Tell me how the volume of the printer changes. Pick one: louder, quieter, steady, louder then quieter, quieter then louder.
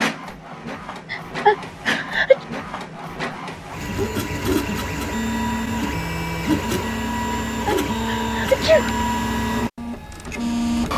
louder.